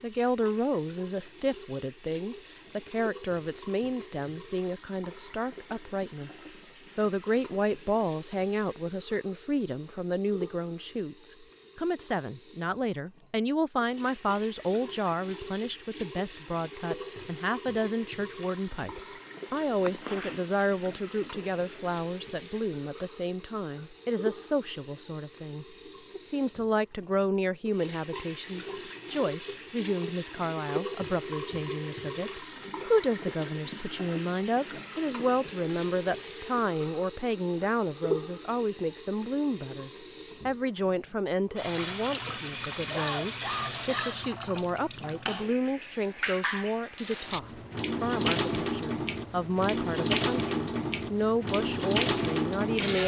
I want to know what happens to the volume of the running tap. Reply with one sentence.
The volume of the running tap goes up.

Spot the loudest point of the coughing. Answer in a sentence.
The loudest moment of the coughing is at 43 seconds.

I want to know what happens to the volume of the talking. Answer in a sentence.
The loudness of the talking stays about the same.